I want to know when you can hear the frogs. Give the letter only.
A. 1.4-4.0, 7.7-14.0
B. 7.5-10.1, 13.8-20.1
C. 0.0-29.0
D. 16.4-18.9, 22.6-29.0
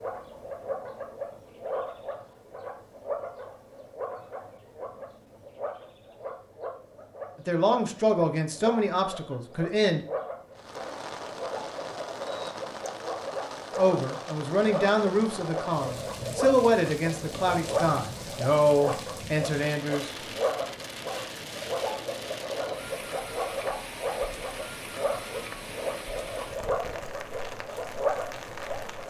C.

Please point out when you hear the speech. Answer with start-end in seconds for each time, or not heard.
7.5-10.1, 13.8-20.1.